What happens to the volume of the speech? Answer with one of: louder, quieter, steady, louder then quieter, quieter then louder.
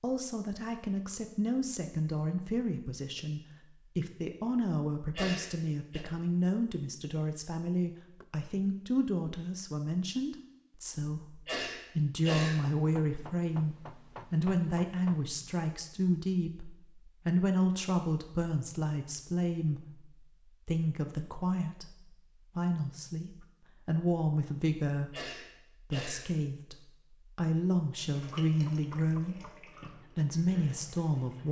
steady.